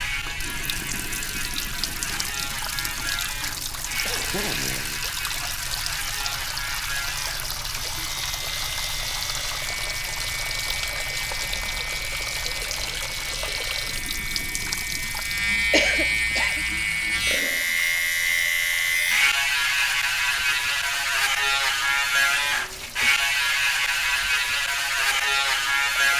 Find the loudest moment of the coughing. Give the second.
16 s.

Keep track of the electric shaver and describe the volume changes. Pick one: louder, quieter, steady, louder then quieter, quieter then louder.
louder.